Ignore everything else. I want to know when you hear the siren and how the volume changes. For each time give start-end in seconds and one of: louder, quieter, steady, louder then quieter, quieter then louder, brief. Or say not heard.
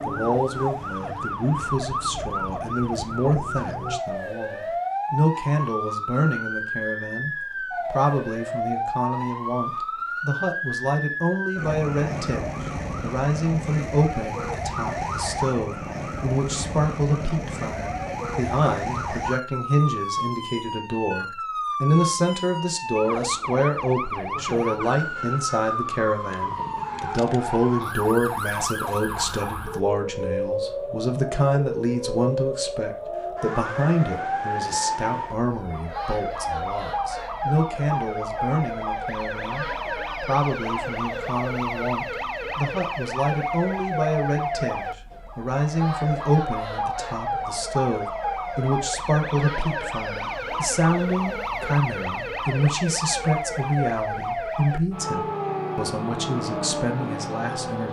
0.0-57.8 steady.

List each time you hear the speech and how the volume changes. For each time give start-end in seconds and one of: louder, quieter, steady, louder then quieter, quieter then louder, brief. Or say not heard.
0.1-57.8 steady.